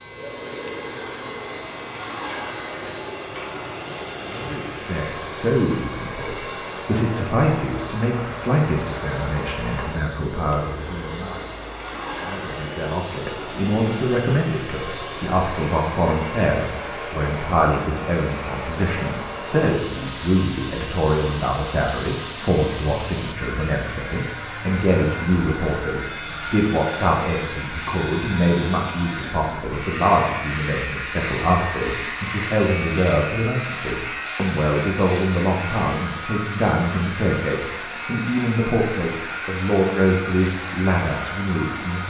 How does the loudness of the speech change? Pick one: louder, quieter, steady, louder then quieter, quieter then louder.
steady.